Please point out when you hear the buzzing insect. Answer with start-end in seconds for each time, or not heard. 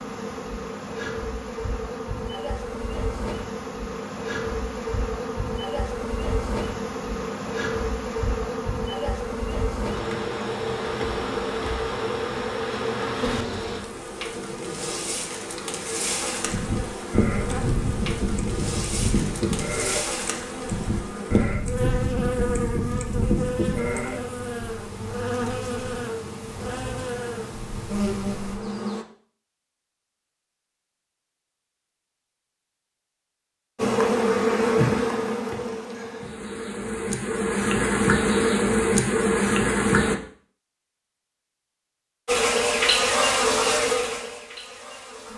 0.0-29.1, 33.8-40.1, 42.2-45.3.